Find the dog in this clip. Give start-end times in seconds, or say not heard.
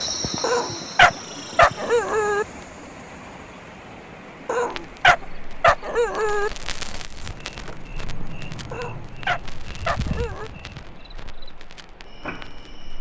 0.4-2.5, 4.5-6.5, 8.7-10.5.